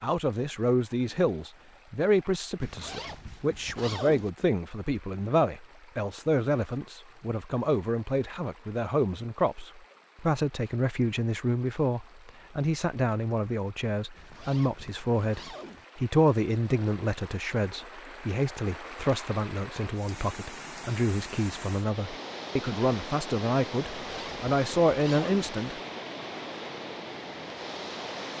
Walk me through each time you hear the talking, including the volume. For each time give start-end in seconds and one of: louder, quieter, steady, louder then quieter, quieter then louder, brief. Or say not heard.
0.0-25.8 steady.